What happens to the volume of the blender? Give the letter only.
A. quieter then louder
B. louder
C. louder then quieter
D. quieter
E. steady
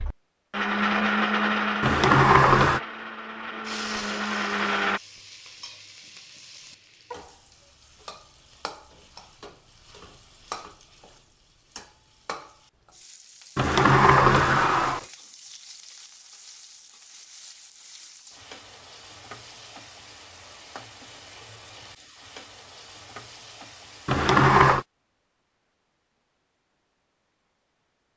A.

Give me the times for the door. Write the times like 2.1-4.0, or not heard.
1.8-2.8, 13.6-15.0, 24.1-24.9.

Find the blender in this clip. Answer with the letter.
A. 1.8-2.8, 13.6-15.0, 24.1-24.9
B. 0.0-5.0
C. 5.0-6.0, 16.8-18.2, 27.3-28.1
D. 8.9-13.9
B.